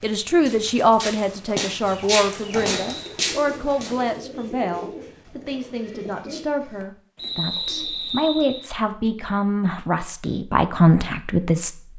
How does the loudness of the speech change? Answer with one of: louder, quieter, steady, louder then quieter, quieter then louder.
quieter then louder.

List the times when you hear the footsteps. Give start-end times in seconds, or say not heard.
0.0-4.2.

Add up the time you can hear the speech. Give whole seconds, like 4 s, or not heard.
12 s.